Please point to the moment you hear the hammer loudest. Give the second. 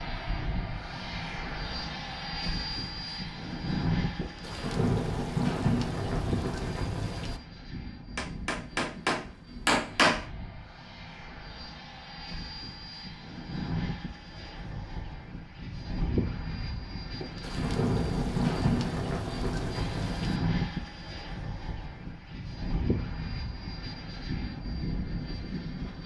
10 s.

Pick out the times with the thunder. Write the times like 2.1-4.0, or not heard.
4.2-7.4, 17.2-20.4.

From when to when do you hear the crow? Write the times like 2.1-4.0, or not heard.
not heard.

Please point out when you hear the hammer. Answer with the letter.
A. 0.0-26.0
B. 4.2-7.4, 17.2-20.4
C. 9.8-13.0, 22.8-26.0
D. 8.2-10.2
D.